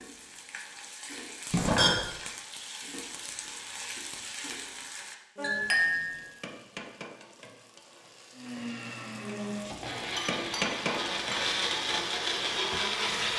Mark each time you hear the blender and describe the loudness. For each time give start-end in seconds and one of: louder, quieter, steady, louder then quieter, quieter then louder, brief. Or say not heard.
8.3-13.3 louder.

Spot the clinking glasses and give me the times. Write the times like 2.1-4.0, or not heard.
1.5-2.0, 5.4-6.2, 10.2-11.5.